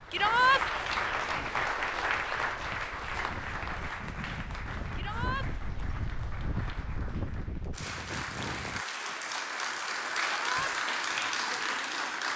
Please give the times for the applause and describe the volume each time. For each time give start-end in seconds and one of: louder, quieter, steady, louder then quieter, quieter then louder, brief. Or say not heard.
0.0-12.3 quieter then louder.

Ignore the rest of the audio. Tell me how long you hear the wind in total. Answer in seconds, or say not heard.
9 s.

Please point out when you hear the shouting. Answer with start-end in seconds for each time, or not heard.
0.1-0.7, 5.0-5.5, 10.2-10.8.